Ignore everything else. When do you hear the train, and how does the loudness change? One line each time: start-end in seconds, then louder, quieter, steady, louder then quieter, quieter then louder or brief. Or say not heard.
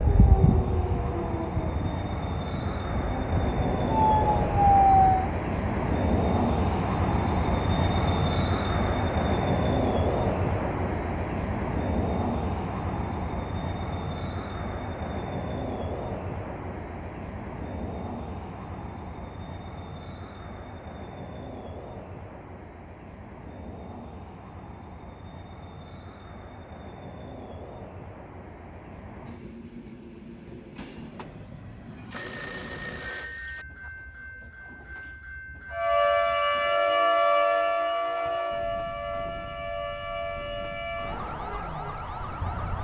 0.0-42.5 quieter.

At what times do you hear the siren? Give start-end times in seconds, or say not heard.
0.0-5.3, 35.7-42.7.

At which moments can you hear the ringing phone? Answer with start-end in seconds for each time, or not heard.
32.1-33.6.